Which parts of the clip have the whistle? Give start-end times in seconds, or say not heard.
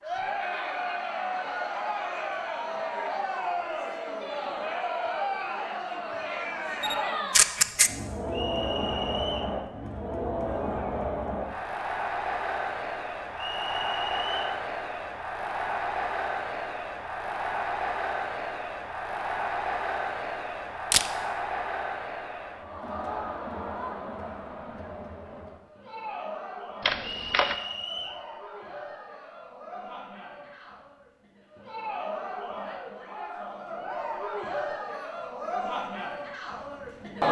8.3-9.6, 13.3-14.6, 27.0-28.2.